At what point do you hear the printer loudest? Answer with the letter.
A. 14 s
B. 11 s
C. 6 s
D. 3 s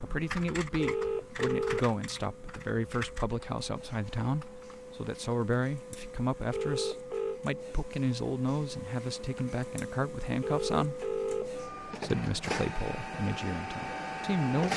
A.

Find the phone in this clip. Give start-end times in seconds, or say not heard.
0.8-1.9, 6.5-7.4, 10.4-11.5.